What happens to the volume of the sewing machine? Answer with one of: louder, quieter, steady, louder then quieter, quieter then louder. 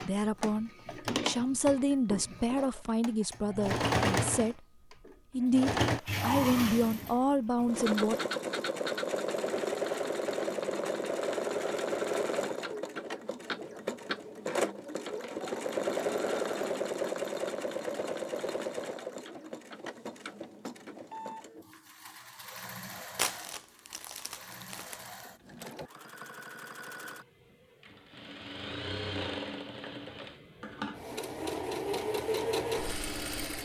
quieter then louder.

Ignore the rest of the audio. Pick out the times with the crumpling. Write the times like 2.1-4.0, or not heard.
23.1-25.2.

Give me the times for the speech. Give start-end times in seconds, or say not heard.
0.1-4.6, 5.3-8.2.